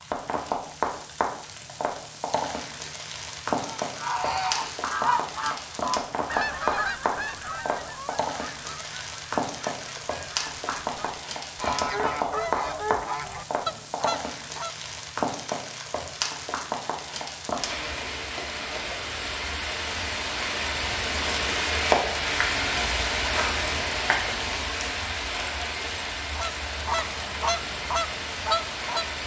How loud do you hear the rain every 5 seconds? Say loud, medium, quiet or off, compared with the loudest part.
medium, medium, medium, medium, loud, medium.